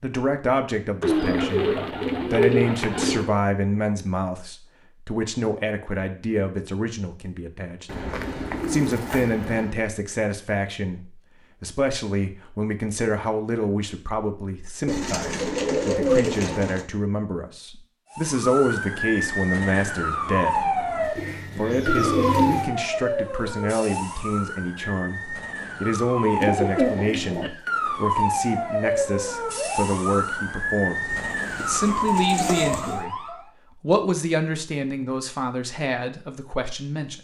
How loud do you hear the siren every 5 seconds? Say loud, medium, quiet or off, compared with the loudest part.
off, off, off, loud, loud, loud, loud, off.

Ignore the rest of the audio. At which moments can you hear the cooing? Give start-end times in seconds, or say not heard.
1.0-3.4, 7.8-9.8, 14.8-16.9, 21.1-22.6, 26.4-27.5, 31.1-33.0.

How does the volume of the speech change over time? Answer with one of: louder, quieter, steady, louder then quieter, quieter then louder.
steady.